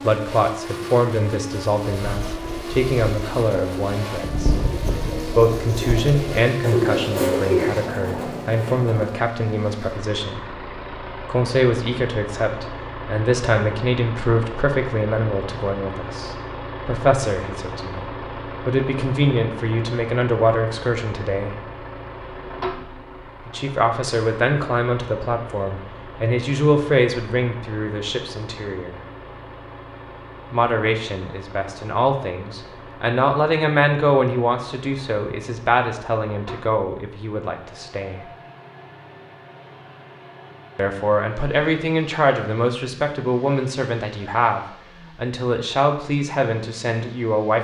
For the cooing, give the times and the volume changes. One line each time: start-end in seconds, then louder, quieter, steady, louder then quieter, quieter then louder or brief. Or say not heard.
1.9-9.2 louder.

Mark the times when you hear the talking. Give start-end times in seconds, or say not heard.
0.0-4.5, 5.2-21.6, 23.4-28.9, 30.5-38.3, 40.8-47.5.